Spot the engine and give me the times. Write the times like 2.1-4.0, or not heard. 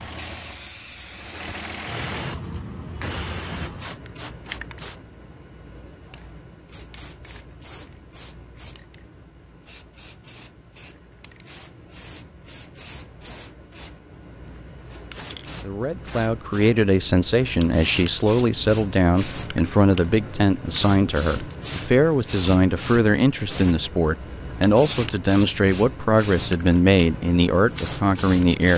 0.0-2.3.